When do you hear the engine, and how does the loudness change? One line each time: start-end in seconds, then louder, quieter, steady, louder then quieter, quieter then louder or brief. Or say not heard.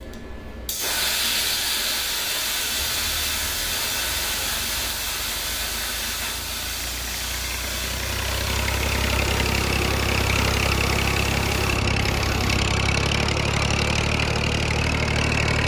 2.8-15.6 louder.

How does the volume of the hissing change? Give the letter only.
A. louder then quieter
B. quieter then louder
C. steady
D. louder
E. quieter
E.